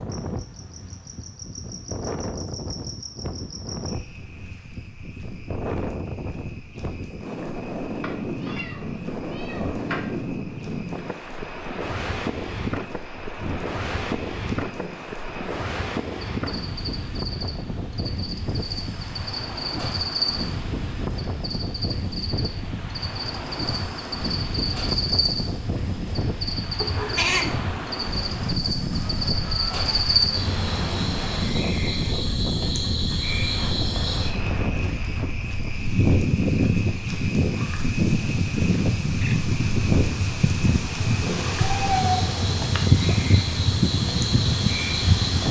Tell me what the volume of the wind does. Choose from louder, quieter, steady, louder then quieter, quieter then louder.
louder.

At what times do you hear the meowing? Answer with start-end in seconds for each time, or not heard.
8.0-10.2, 26.8-27.6, 41.8-42.9.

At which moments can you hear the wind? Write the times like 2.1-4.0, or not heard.
0.0-45.4.